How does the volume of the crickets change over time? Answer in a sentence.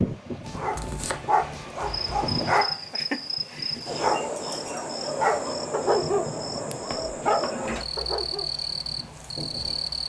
The loudness of the crickets stays about the same.